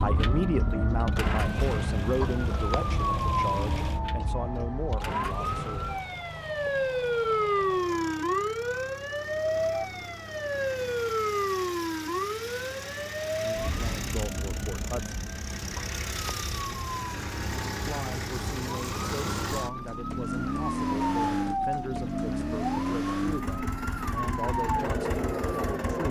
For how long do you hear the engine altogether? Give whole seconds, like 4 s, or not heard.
26 s.